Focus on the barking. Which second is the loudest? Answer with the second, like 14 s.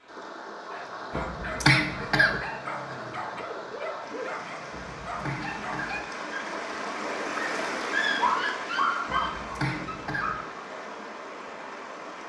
8 s.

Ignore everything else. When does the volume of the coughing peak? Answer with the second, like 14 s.
2 s.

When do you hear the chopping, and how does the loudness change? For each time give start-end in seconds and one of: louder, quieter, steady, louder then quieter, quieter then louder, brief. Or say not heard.
not heard.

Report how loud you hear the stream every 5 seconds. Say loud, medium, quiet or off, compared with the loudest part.
medium, loud, medium.